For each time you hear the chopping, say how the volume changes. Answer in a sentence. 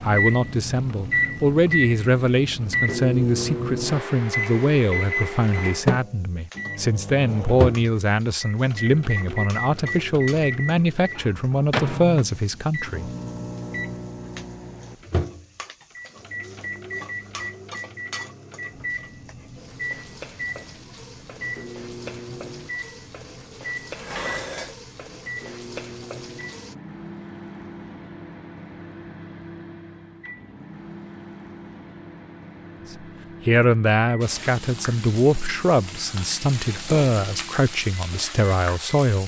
The chopping can't be heard in this clip.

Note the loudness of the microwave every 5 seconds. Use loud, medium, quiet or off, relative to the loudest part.
loud, loud, medium, medium, medium, quiet, quiet, quiet.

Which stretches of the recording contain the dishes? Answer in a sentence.
The dishes can be heard from 23.9 to 24.8 s.